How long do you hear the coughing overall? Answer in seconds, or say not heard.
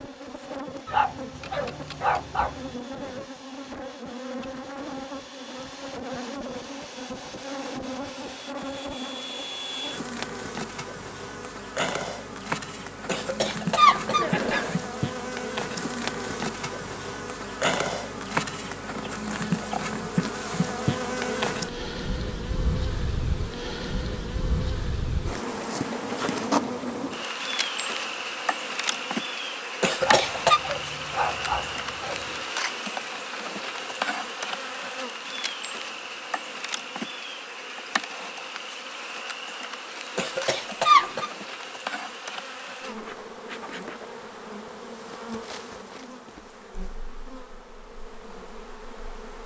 4 s.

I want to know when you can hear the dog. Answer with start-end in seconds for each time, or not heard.
0.8-2.8, 30.0-32.5.